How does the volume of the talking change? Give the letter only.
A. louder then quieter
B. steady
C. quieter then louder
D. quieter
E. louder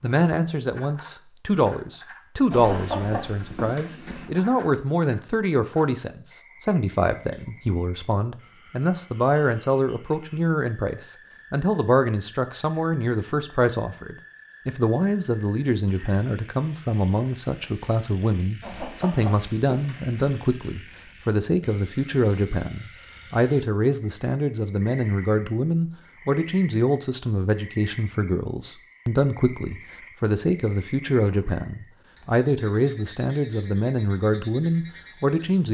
B.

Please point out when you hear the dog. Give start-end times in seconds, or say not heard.
not heard.